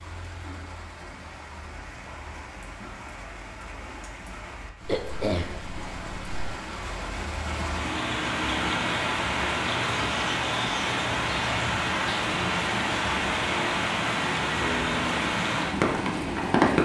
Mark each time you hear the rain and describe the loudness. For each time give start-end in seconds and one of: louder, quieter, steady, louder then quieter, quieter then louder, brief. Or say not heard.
0.0-16.7 louder.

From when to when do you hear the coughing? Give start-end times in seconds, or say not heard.
4.8-6.5.